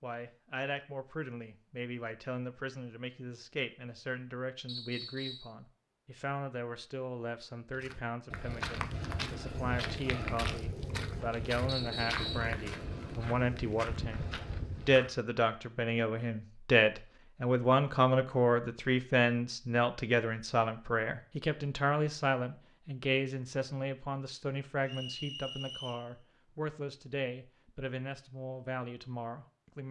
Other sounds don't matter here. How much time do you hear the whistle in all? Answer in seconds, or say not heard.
3 s.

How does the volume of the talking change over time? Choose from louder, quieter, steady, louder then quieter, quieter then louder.
louder then quieter.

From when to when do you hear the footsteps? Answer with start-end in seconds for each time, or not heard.
7.7-15.2.